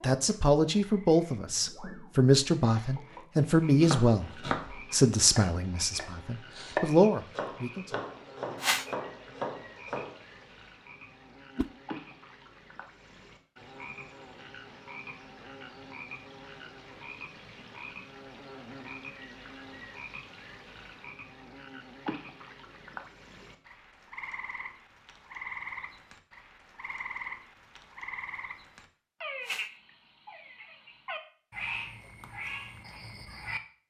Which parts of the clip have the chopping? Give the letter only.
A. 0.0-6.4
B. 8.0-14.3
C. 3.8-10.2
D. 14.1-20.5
C.